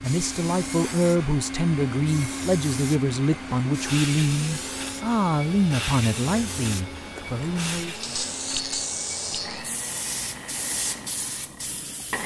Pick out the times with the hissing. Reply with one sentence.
You can hear the hissing from 0.0 to 12.2 s.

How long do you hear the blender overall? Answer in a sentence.
You can hear the blender for 12 seconds altogether.